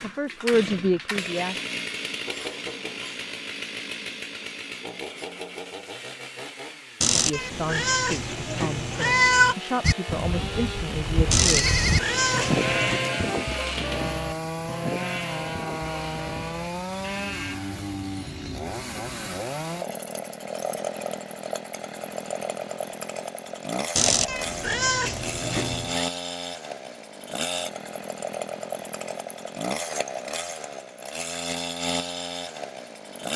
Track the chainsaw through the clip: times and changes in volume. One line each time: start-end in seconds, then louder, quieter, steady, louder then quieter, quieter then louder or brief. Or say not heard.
0.0-33.3 steady.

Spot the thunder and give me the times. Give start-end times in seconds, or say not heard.
not heard.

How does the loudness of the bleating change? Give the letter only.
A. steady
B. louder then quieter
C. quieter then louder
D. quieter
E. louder
B.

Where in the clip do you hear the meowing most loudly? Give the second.
9 s.